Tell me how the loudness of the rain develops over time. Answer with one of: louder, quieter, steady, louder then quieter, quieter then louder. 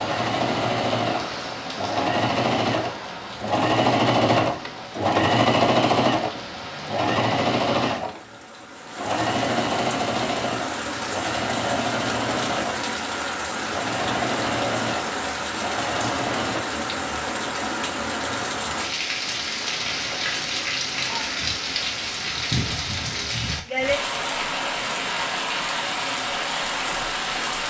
louder.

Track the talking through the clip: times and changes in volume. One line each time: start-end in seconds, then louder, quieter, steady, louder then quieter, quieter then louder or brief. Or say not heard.
not heard.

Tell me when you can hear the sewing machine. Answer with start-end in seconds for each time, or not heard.
0.0-16.6.